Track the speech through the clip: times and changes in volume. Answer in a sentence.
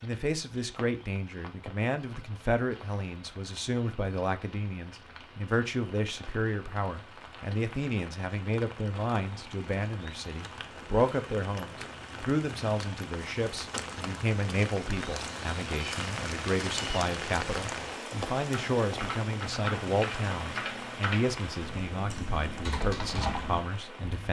You can hear the speech from 0.0 to 24.2 s, at a steady volume.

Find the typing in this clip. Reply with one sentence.
You can hear the typing from 18.5 to 24.2 s.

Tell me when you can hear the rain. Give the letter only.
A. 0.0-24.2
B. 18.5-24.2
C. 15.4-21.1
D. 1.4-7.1
A.